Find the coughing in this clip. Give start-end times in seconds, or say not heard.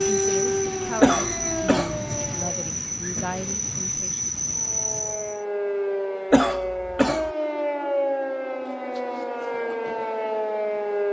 1.0-2.0, 6.3-7.3.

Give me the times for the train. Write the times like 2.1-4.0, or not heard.
0.0-5.5.